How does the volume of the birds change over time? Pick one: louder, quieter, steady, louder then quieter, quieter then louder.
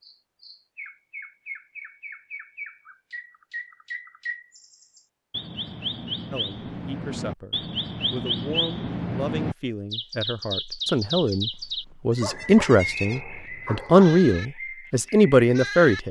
louder then quieter.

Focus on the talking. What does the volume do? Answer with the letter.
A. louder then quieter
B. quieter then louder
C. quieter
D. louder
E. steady
D.